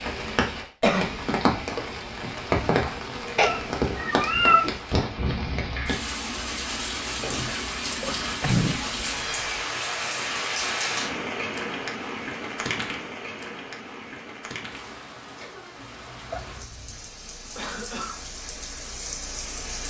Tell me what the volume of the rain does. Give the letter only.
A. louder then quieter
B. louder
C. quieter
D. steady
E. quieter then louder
C.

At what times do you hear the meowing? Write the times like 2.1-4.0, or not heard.
3.4-4.8, 8.4-9.6, 16.3-17.1.